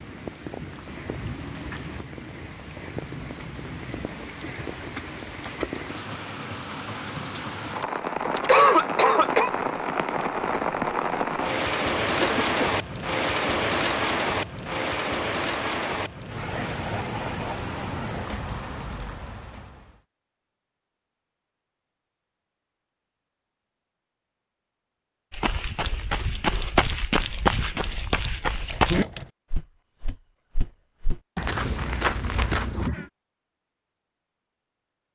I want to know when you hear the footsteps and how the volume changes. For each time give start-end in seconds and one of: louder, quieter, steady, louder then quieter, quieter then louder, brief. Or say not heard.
25.3-32.9 quieter then louder.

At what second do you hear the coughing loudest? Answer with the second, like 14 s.
9 s.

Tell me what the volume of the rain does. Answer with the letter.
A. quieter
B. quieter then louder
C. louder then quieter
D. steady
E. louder
C.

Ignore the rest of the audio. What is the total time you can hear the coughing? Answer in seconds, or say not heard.
3 s.